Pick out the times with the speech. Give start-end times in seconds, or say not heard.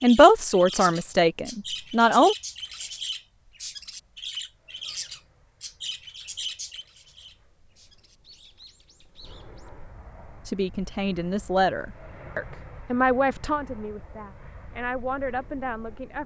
0.0-2.4, 10.4-16.2.